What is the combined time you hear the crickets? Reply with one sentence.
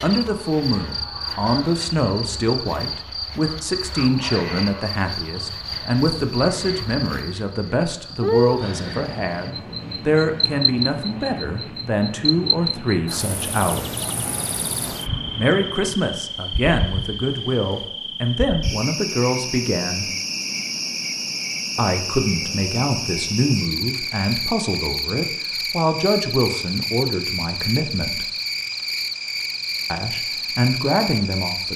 The crickets can be heard for 32 seconds in total.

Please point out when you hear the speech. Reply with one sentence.
The speech can be heard from 0.0 to 14.1 s, from 15.3 to 20.1 s, from 21.8 to 28.3 s and from 29.9 to 31.7 s.